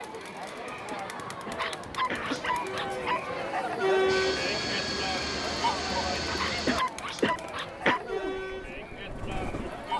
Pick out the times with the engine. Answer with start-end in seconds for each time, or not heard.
4.0-6.8.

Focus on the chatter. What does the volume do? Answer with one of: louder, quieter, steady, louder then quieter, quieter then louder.
louder then quieter.